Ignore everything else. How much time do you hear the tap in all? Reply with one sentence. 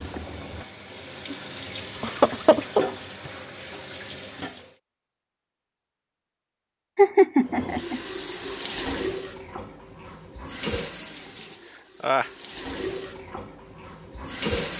You can hear the tap for 12 seconds altogether.